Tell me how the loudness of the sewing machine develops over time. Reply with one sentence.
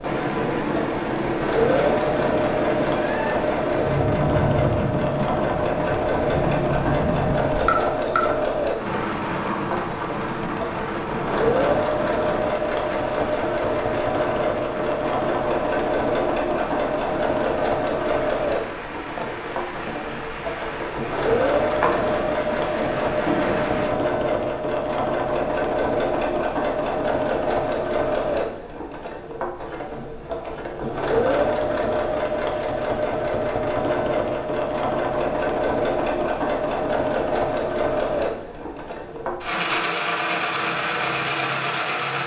The loudness of the sewing machine stays about the same.